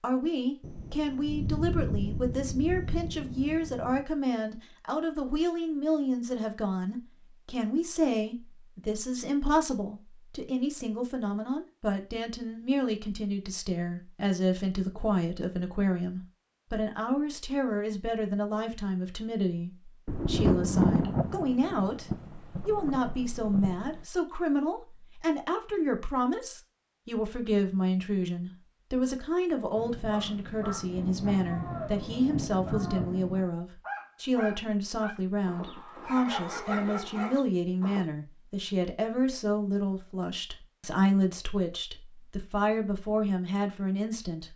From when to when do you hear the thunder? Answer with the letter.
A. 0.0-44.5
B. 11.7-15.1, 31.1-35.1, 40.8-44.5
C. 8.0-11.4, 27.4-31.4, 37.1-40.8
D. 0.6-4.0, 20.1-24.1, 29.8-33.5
D.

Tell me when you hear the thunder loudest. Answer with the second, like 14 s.
21 s.